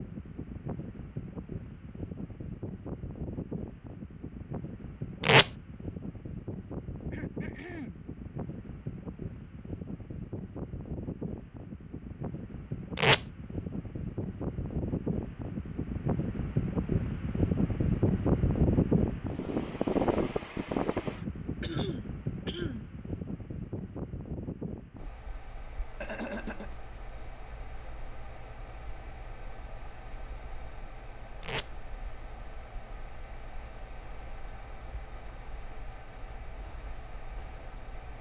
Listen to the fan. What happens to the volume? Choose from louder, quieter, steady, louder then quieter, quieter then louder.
louder then quieter.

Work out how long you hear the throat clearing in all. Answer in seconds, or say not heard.
3 s.